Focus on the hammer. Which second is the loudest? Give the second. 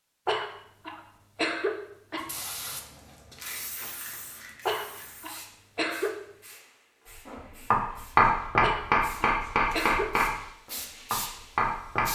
8 s.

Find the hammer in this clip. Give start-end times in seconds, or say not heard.
7.7-10.4, 11.1-12.0.